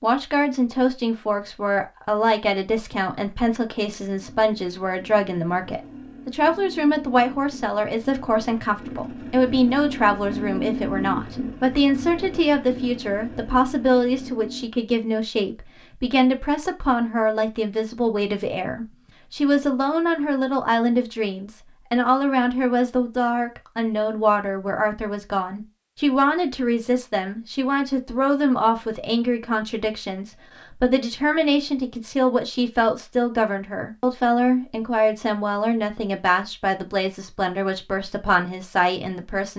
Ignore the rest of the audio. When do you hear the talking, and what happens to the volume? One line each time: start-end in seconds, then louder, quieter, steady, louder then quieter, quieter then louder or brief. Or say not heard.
0.0-39.5 steady.